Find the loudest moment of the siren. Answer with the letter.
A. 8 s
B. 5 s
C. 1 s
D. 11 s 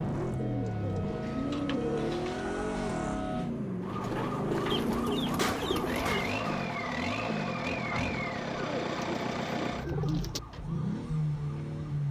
B.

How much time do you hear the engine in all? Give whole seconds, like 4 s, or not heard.
12 s.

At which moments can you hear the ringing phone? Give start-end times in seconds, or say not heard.
not heard.